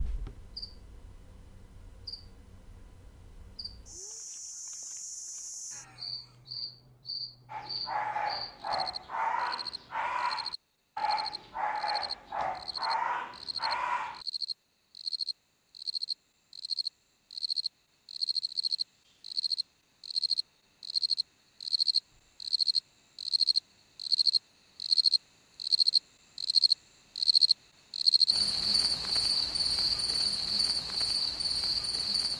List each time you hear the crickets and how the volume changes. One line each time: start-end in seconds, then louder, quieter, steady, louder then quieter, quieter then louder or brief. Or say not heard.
0.0-32.3 louder.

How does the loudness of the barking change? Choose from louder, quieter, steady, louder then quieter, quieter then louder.
steady.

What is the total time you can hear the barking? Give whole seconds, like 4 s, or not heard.
7 s.